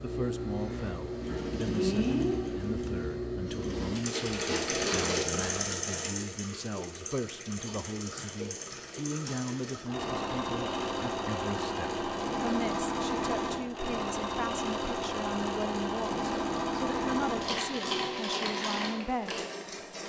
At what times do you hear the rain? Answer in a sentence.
The rain can't be heard in this clip.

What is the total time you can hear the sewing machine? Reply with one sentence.
You can hear the sewing machine for 20 seconds altogether.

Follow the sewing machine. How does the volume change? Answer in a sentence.
The loudness of the sewing machine stays about the same.